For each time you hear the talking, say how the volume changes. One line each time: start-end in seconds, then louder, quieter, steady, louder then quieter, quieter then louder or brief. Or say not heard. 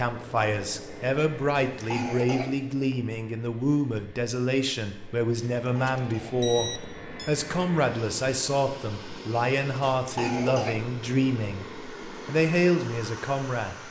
0.0-13.8 steady.